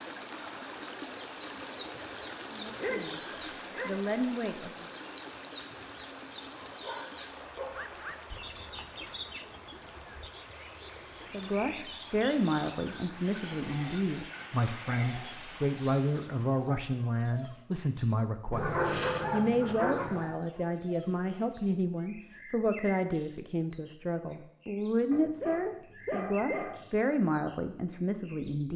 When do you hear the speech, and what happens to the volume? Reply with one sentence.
The speech can be heard briefly from 2.5 to 4.8 s; and from 11.3 to 28.7 s, at a steady volume.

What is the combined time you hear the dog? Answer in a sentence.
The dog can be heard for 9 seconds in total.